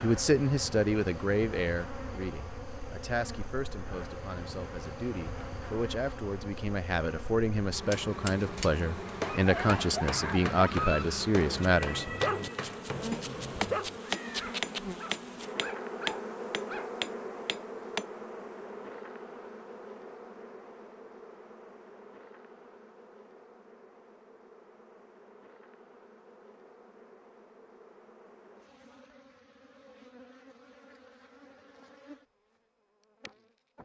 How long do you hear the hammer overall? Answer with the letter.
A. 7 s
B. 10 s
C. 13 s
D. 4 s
B.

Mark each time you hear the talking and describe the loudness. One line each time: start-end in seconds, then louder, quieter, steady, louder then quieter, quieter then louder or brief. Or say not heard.
0.0-12.1 quieter then louder.